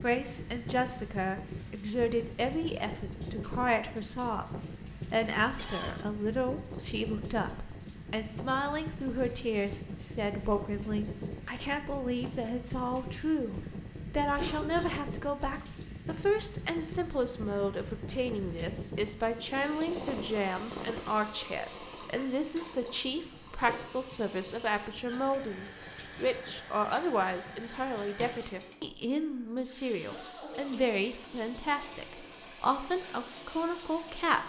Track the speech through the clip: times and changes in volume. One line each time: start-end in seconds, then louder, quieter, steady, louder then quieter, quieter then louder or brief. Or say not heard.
0.0-34.4 steady.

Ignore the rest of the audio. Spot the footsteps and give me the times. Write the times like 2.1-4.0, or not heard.
not heard.